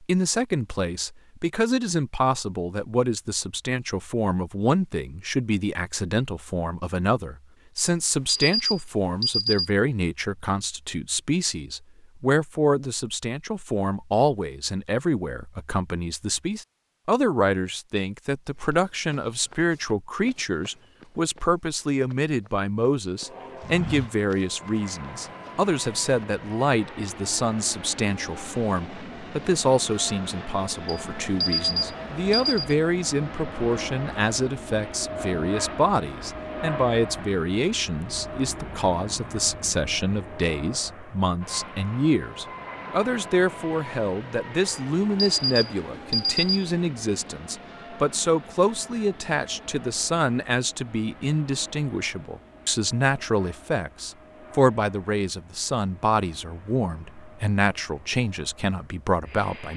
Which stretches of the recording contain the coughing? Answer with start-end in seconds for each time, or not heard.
not heard.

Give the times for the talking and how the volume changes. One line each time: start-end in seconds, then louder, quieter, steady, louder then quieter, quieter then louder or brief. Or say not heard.
0.0-59.7 steady.